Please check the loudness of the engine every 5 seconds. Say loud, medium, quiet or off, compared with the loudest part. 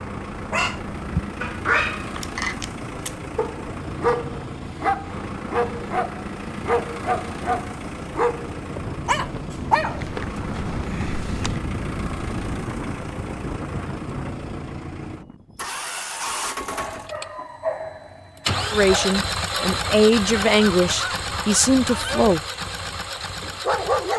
medium, medium, medium, loud, loud.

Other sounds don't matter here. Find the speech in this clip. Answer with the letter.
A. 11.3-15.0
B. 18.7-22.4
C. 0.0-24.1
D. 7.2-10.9
B.